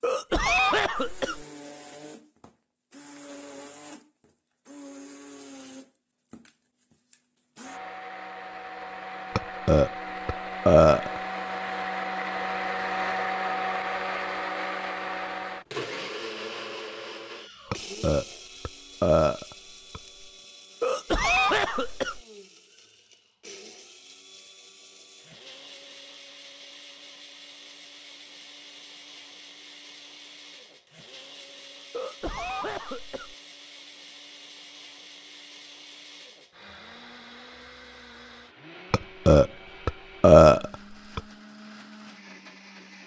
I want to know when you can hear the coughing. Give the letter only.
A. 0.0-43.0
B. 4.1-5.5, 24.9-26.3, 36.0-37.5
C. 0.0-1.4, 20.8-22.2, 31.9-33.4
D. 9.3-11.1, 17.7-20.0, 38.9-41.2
C.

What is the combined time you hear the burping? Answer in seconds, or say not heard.
6 s.